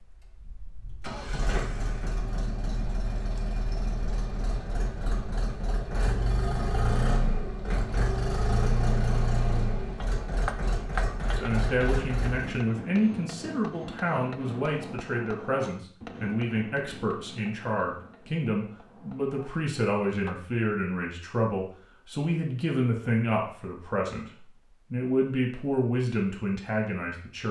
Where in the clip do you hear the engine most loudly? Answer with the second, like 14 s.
9 s.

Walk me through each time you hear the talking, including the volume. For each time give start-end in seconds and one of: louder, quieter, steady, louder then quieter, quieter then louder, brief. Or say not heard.
11.3-27.4 steady.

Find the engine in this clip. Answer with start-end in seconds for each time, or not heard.
0.0-12.6.